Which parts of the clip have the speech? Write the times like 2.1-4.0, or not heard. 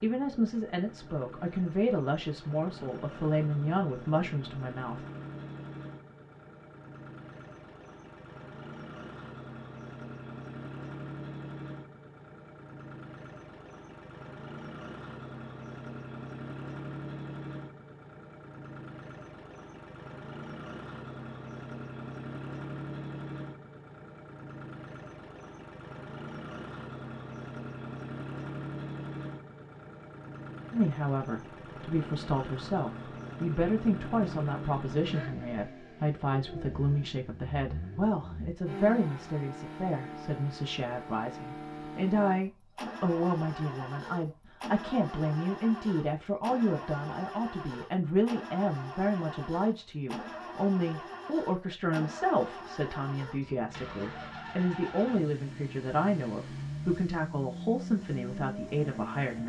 0.0-5.0, 30.7-59.4.